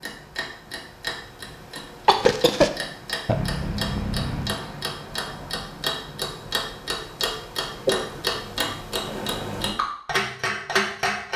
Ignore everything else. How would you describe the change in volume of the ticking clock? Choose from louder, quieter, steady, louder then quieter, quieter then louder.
louder.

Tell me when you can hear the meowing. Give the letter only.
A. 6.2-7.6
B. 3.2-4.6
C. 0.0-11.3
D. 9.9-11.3
B.